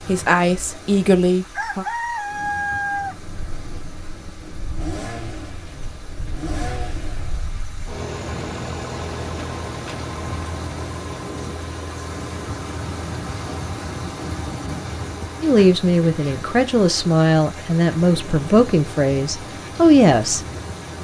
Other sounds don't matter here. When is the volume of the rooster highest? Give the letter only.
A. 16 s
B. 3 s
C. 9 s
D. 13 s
B.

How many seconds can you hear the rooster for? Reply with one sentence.
You can hear the rooster for 2 seconds altogether.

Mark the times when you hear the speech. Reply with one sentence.
You can hear the speech from 0.1 to 1.9 s and from 15.4 to 20.4 s.